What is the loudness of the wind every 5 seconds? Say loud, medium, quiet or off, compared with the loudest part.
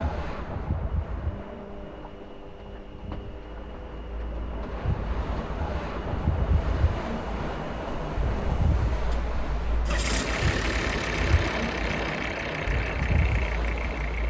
medium, loud, loud.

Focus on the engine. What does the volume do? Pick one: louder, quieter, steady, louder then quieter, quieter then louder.
louder.